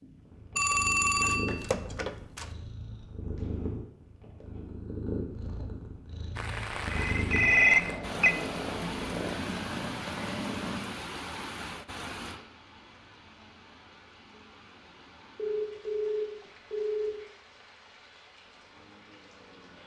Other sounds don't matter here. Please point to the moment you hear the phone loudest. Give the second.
8 s.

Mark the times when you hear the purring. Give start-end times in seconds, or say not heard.
0.0-10.9.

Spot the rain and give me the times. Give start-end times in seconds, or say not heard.
6.3-19.8.